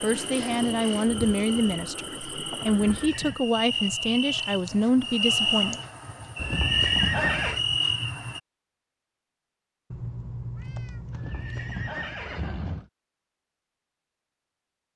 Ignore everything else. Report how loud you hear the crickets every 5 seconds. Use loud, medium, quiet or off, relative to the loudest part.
medium, loud, off.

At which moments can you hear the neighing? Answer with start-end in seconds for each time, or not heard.
2.6-3.4, 6.3-7.6, 11.1-12.9.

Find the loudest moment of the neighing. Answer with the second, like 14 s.
7 s.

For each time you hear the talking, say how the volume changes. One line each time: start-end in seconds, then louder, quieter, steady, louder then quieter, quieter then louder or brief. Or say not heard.
0.0-5.8 steady.